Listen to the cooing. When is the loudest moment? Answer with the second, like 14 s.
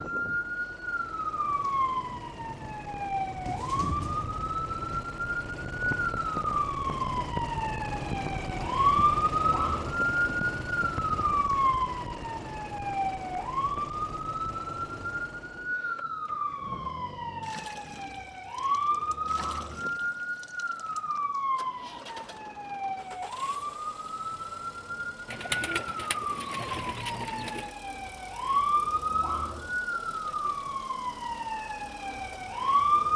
26 s.